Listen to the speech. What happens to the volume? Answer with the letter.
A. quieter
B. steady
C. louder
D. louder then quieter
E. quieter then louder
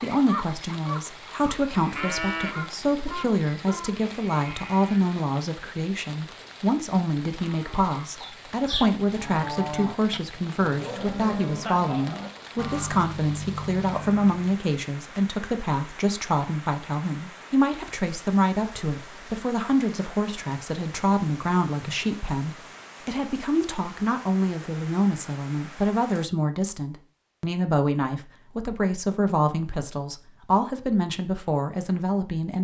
B.